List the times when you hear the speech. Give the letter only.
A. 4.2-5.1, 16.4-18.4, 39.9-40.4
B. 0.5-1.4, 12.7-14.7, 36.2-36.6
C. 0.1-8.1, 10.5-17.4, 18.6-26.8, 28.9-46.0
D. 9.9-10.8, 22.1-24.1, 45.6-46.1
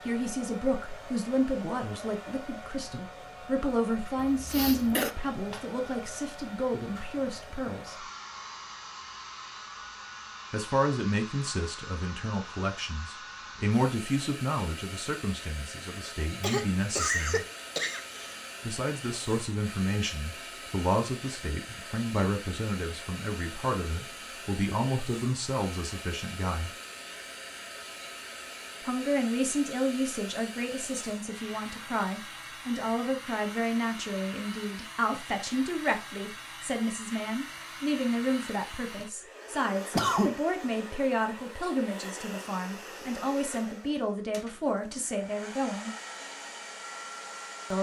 C.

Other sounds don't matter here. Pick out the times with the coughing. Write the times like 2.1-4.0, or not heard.
4.2-5.1, 16.4-18.4, 39.9-40.4.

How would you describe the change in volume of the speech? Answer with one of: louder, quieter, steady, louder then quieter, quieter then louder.
steady.